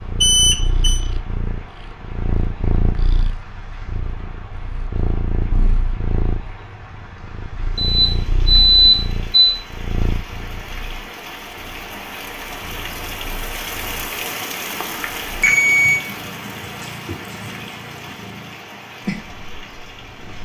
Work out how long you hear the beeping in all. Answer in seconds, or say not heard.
4 s.